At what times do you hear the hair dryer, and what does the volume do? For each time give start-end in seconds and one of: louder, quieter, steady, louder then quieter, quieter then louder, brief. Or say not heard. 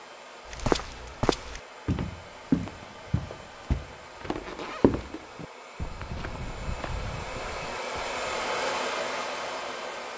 0.0-10.1 louder.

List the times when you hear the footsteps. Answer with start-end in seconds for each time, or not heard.
0.5-8.5.